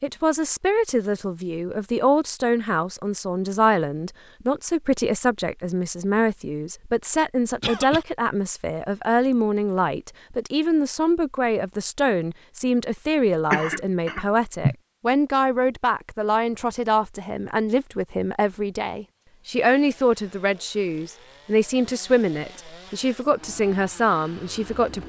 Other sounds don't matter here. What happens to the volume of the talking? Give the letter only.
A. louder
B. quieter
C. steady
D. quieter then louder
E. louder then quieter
C.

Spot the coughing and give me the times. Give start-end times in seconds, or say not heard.
7.6-8.1, 13.5-14.8.